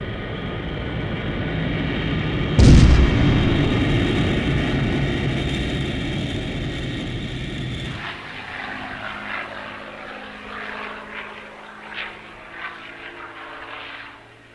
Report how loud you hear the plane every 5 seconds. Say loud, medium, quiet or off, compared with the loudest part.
loud, medium, quiet.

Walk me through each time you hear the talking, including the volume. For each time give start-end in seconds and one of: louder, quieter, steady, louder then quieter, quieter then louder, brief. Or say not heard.
not heard.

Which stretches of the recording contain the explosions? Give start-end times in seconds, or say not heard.
2.5-3.8.